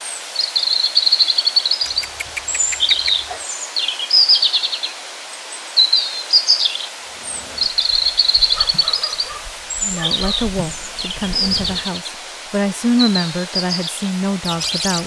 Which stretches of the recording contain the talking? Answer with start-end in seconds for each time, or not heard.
9.8-15.0.